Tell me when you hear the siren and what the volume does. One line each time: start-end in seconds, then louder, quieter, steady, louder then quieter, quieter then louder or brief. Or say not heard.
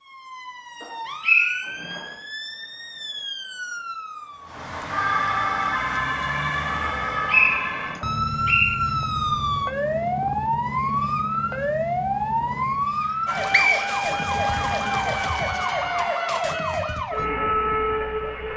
0.0-18.5 louder.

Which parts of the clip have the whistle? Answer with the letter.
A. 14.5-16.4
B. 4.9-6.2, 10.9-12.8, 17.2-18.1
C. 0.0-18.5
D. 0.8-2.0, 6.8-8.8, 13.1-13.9
D.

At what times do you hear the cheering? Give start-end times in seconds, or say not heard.
14.5-16.4.